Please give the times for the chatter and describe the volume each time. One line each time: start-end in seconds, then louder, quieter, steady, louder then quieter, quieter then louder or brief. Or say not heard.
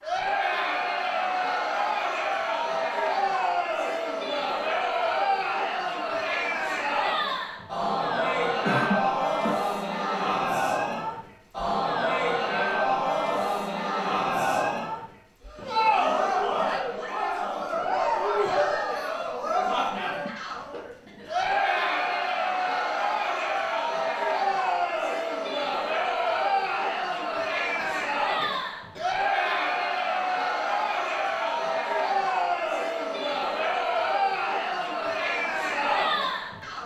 0.0-36.8 steady.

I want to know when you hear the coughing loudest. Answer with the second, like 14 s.
9 s.